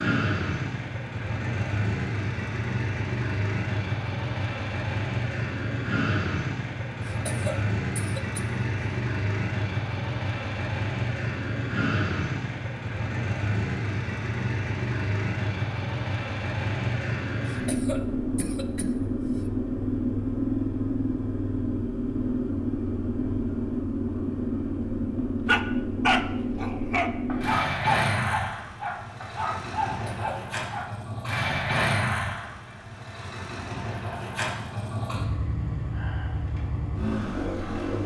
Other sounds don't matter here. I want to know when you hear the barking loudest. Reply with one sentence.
The loudest moment of the barking is at 26 seconds.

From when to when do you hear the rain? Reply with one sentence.
You can't hear the rain here.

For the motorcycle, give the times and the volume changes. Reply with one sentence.
You can hear the motorcycle from 0.0 to 38.0 s, at a steady volume.